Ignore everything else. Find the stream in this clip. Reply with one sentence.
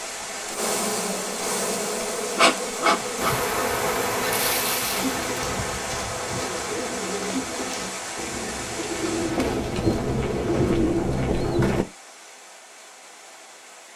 You can hear the stream from 0.0 to 13.9 s.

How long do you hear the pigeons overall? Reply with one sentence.
You can hear the pigeons for 7 seconds altogether.